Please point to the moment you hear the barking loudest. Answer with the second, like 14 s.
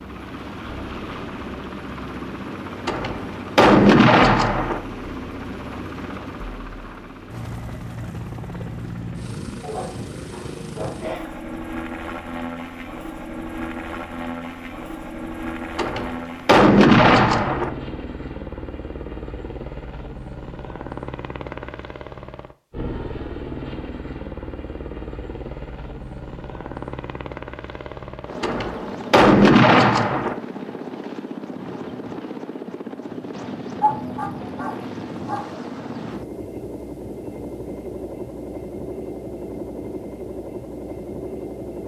34 s.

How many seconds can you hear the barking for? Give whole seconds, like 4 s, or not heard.
3 s.